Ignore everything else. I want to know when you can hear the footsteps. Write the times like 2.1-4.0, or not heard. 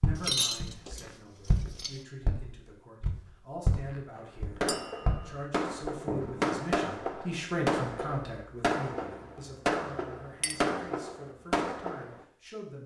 0.0-6.5.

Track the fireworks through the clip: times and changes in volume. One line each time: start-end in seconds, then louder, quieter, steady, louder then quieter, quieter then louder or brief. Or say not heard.
4.2-12.2 steady.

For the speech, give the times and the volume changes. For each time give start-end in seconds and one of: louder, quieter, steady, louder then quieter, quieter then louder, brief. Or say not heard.
0.0-12.8 louder then quieter.